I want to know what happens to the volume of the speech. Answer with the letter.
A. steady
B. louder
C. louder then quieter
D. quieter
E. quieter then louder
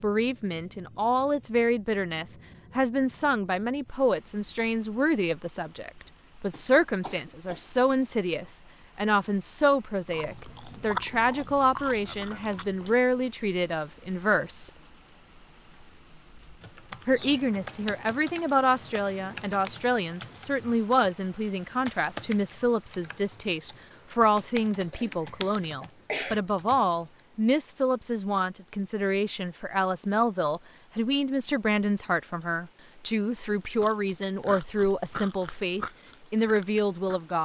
A.